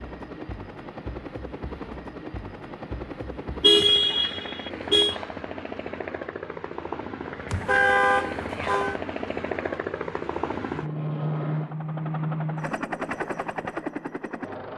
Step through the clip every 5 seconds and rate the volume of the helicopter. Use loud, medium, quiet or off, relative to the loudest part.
medium, loud, loud.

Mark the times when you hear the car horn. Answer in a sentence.
You can hear the car horn from 3.6 to 5.2 s and from 7.5 to 9.0 s.